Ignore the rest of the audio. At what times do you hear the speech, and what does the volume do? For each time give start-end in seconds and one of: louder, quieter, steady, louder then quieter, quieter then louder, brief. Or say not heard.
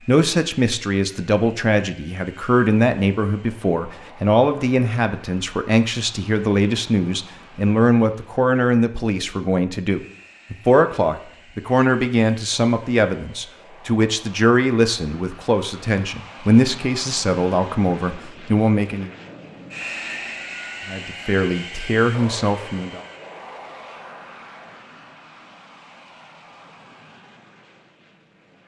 0.1-19.1 steady
20.9-23.0 brief.